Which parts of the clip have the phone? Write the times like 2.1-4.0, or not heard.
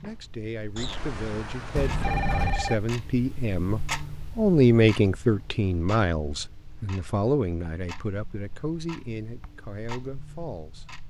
0.8-2.8.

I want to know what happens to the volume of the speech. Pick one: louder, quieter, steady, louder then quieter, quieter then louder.
louder then quieter.